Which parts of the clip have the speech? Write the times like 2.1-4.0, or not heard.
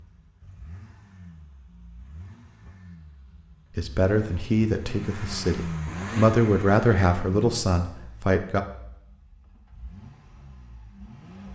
3.8-8.6.